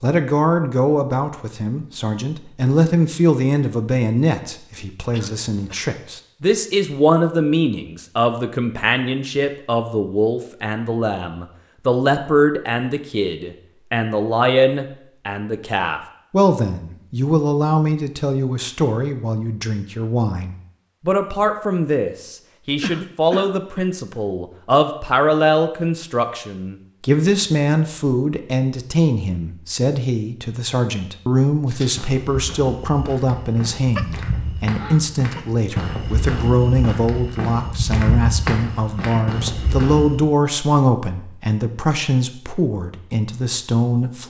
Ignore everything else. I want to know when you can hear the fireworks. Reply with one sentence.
You can't hear the fireworks here.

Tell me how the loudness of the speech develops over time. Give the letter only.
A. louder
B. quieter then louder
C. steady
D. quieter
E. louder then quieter
C.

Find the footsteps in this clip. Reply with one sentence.
You can hear the footsteps from 31.6 to 40.2 s.